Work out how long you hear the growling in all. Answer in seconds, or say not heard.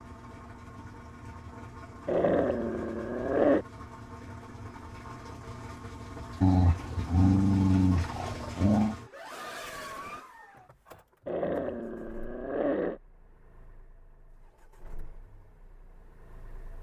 6 s.